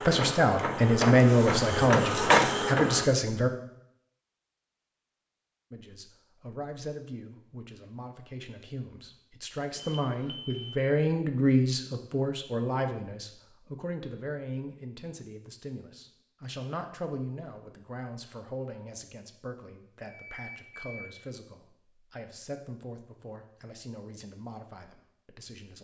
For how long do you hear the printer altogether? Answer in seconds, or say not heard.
3 s.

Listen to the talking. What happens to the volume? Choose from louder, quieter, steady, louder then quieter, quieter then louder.
quieter.